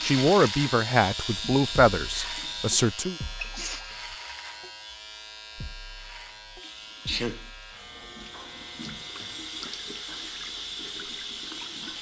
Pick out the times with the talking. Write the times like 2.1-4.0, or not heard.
0.0-3.1.